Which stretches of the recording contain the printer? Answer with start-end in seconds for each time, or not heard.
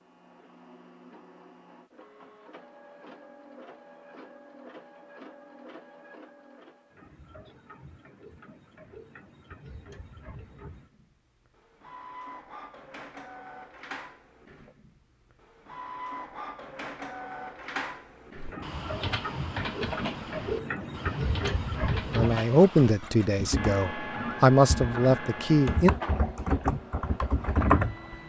0.0-28.2.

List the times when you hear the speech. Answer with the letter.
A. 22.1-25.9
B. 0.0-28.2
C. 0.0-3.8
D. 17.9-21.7
A.